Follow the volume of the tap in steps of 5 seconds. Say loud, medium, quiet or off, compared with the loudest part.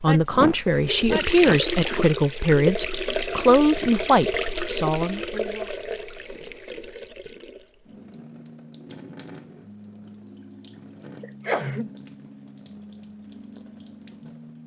loud, medium, quiet.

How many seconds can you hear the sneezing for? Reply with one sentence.
The sneezing can be heard for 2 seconds in total.